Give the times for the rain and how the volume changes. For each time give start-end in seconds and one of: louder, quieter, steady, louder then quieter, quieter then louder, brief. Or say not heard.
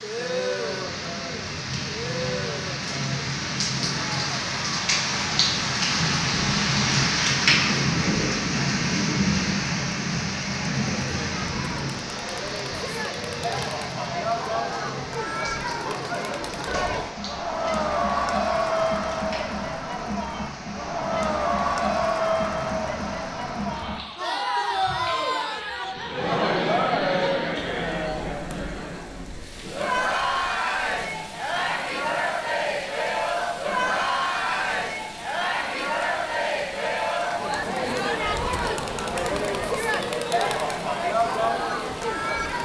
0.0-42.5 quieter.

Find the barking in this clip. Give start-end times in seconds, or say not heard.
not heard.